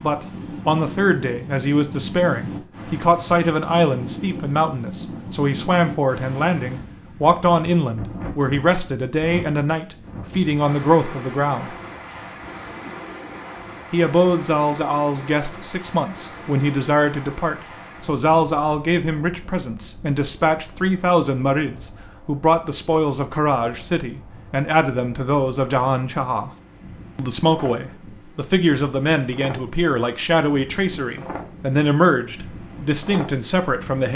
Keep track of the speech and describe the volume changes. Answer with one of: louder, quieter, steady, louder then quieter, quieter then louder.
steady.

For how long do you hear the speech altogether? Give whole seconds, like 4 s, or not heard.
31 s.